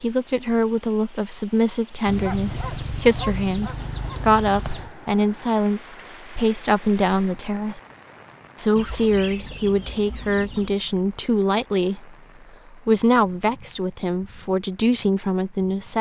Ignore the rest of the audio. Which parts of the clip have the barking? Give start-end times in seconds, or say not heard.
2.2-4.2.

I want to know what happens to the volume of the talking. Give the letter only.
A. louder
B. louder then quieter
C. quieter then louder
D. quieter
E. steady
E.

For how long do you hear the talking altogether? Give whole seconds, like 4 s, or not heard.
15 s.